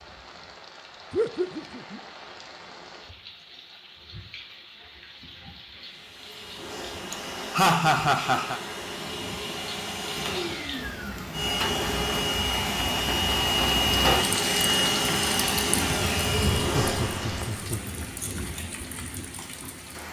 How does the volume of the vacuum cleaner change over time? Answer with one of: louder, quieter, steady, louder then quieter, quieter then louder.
louder.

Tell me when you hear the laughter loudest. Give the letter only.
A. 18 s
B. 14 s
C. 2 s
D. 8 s
D.